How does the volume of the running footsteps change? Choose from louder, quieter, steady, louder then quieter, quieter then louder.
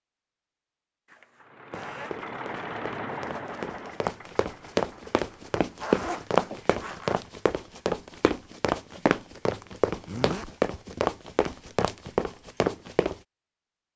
louder.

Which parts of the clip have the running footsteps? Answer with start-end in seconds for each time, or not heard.
1.7-13.2.